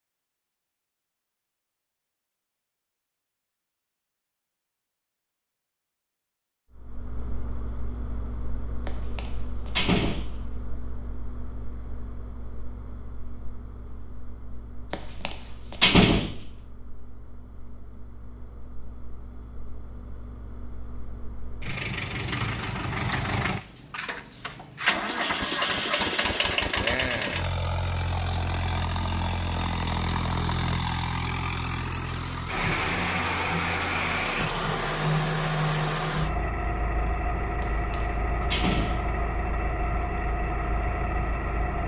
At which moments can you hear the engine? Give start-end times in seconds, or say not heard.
6.8-41.8.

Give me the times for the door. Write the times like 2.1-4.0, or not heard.
8.8-10.8, 14.9-16.4, 37.6-39.0.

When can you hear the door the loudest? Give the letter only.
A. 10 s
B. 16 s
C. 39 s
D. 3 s
B.